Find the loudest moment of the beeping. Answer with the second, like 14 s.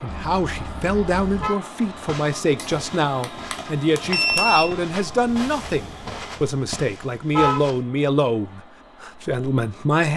4 s.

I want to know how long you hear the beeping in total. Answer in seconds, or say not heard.
2 s.